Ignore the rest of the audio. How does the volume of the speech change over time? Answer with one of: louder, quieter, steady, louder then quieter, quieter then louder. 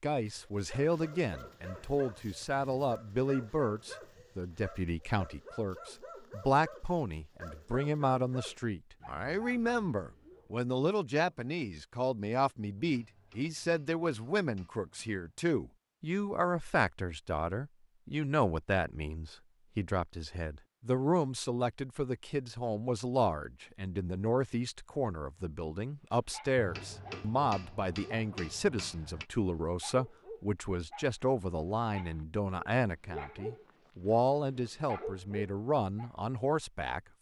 steady.